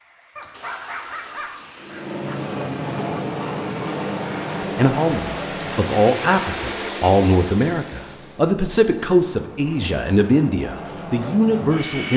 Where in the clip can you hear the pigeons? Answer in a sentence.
You can't hear the pigeons here.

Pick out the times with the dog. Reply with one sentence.
You can hear the dog from 0.3 to 2.2 s.